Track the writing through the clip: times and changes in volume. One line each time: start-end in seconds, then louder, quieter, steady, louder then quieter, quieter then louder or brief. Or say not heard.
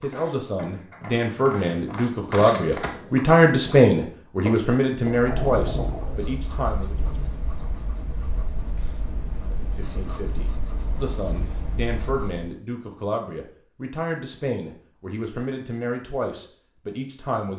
5.0-12.6 quieter.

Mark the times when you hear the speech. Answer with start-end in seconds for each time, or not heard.
0.0-7.1, 9.4-17.5.